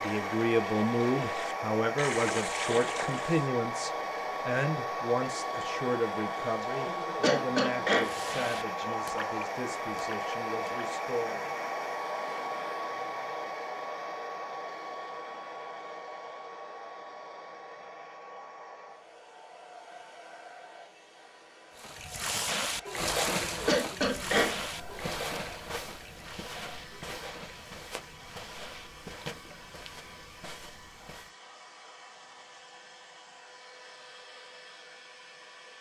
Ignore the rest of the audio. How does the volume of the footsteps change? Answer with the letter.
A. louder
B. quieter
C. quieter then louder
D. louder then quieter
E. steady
B.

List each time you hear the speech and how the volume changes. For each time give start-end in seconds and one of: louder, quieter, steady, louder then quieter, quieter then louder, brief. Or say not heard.
0.0-11.4 quieter.